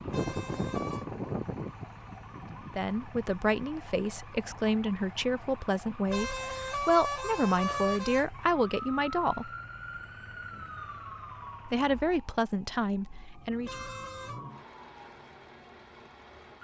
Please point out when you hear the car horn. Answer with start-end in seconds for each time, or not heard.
0.1-1.1, 6.0-8.6, 13.6-14.4.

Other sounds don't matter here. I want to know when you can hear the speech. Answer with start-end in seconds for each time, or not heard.
2.7-9.5, 11.7-13.8.